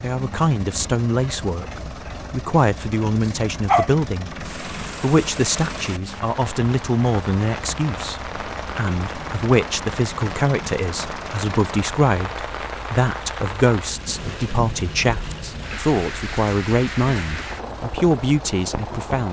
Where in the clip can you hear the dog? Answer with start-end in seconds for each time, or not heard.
3.2-3.9.